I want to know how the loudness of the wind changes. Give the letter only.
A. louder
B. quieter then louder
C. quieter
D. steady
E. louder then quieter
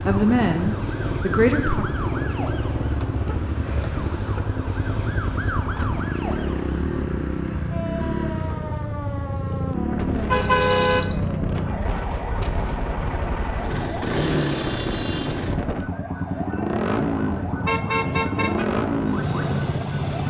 D.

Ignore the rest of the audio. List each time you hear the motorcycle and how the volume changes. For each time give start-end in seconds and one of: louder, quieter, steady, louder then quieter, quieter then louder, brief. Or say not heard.
0.0-20.2 steady.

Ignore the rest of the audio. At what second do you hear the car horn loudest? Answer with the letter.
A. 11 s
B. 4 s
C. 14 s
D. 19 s
A.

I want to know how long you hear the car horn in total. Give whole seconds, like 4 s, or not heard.
3 s.